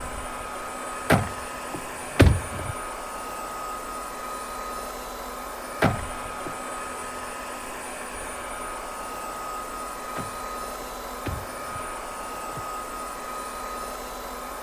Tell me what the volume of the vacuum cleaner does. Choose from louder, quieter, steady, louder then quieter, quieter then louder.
steady.